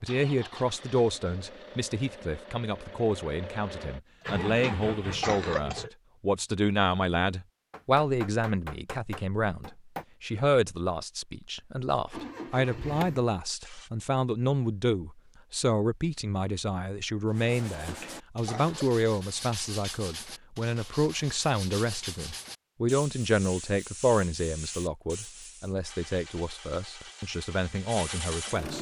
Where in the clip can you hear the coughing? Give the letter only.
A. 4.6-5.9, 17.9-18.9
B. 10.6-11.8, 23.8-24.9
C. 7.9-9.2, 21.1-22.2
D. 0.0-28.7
A.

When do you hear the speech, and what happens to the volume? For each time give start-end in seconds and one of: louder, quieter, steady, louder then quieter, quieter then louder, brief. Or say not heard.
0.0-28.7 steady.